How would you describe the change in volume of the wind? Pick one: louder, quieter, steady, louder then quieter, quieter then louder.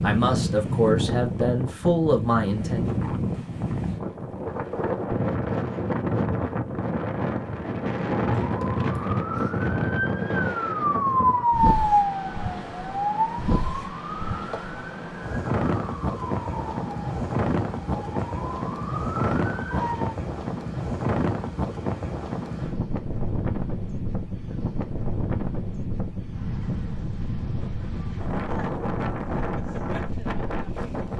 steady.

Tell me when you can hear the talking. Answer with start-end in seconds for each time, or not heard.
0.0-2.9.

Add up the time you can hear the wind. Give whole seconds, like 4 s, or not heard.
31 s.